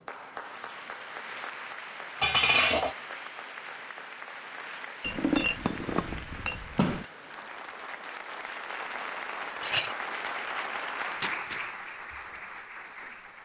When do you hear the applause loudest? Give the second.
11 s.